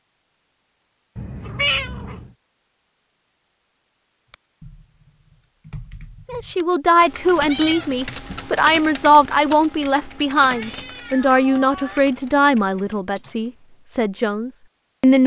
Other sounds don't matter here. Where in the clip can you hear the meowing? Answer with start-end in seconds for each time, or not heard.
1.1-2.3, 7.4-8.6, 10.4-12.1.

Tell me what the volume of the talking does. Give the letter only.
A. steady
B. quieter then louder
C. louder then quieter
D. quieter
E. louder
D.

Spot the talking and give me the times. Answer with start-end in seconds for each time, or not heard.
6.2-15.2.